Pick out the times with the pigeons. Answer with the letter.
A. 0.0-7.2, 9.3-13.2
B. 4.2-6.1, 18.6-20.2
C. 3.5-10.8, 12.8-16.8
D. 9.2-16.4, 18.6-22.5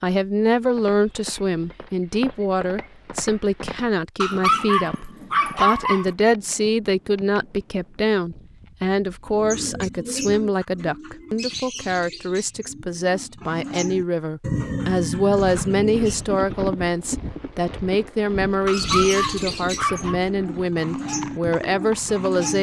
D.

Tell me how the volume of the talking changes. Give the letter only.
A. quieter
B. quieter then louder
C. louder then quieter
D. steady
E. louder
D.